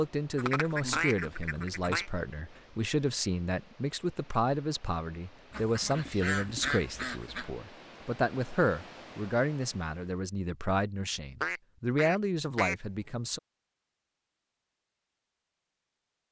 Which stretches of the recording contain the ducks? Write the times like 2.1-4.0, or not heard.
0.3-2.1, 5.5-7.5, 11.4-12.8.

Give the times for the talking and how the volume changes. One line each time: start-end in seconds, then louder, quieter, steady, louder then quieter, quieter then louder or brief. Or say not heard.
0.0-13.4 steady.